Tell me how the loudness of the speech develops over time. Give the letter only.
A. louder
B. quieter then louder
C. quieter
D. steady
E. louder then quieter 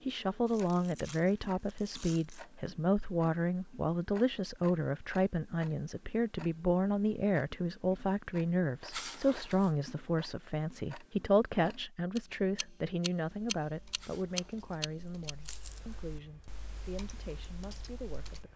C.